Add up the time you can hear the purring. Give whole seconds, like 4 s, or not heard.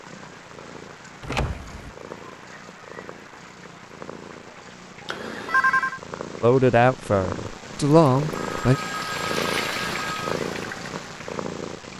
12 s.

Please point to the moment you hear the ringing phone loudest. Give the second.
6 s.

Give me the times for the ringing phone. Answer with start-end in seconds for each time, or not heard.
1.2-1.9, 5.0-6.0, 8.3-10.3.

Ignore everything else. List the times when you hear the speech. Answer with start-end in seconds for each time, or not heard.
6.4-8.8.